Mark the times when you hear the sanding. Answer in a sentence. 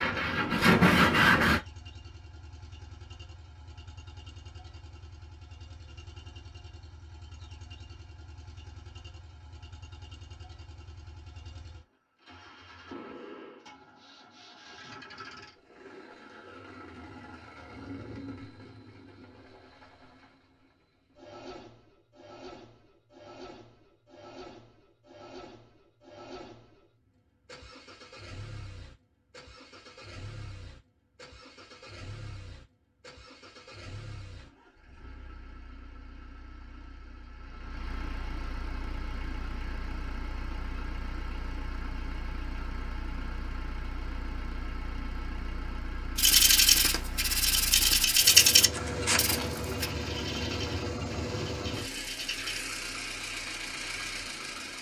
The sanding can be heard from 0.0 to 1.6 s and from 46.1 to 52.6 s.